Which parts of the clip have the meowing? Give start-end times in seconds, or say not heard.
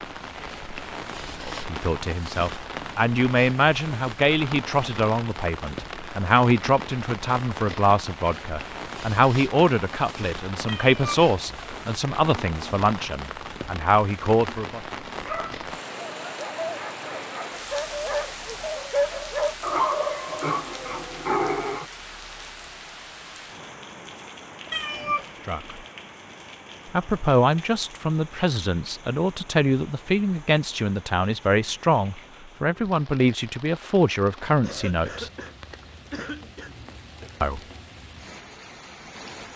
10.7-11.2, 24.7-25.2.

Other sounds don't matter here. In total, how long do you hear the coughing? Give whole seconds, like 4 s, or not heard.
2 s.